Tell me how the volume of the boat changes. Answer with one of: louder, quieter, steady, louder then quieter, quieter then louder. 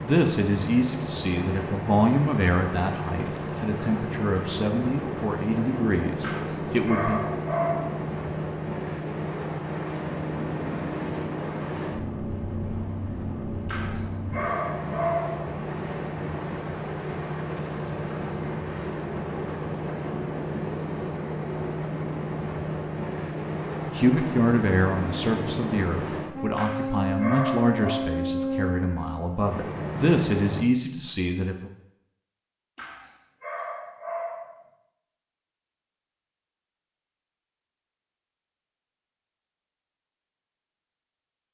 steady.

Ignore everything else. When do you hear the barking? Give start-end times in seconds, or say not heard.
6.2-8.1, 13.7-15.6, 26.6-28.1, 32.8-34.7.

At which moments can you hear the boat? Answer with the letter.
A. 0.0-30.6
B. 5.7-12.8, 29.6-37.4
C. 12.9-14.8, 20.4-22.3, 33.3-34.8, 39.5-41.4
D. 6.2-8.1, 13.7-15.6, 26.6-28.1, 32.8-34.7
A.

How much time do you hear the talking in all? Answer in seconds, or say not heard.
15 s.